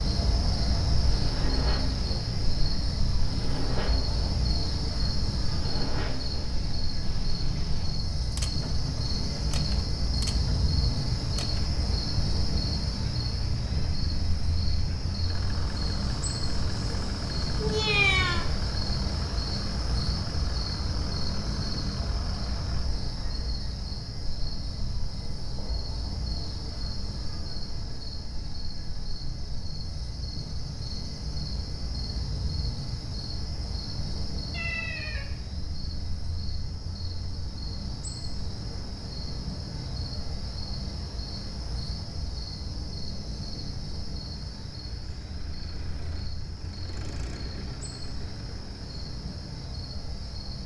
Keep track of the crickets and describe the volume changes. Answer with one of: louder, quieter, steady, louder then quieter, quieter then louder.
quieter.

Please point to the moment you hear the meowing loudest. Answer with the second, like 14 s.
18 s.